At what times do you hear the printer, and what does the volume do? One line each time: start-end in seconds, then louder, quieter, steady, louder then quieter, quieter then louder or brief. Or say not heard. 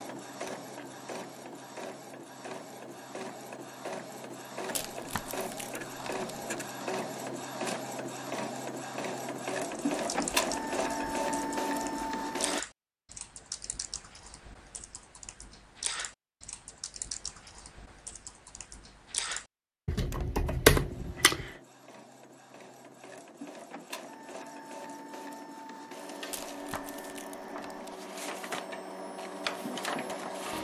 0.0-12.7 louder
20.8-30.5 louder.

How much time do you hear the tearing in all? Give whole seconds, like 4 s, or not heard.
4 s.